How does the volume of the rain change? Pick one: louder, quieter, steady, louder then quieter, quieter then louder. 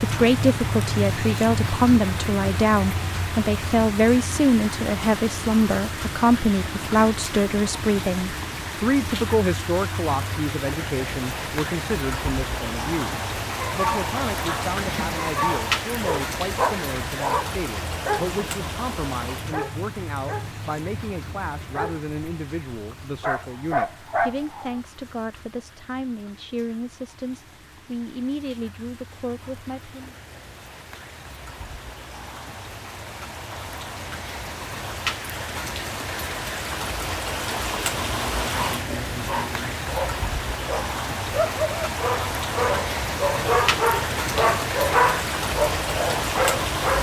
quieter then louder.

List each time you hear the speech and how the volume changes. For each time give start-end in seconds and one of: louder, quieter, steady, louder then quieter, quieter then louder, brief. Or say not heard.
0.0-30.1 quieter.